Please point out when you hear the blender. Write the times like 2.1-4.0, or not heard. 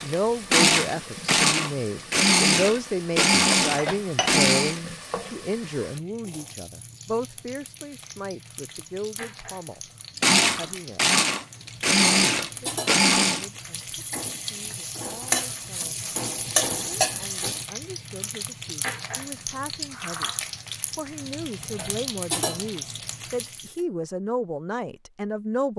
0.0-4.8, 10.2-13.4.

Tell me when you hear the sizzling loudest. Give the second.
17 s.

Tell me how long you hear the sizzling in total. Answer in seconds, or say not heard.
24 s.